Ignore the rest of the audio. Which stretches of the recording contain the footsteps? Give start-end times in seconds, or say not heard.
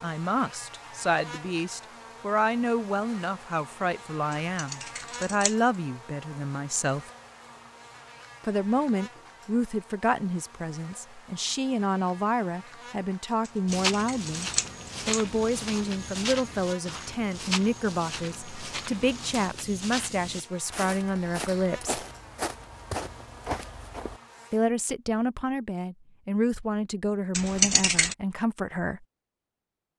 13.7-24.2.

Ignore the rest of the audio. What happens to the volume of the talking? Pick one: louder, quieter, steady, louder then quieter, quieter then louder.
steady.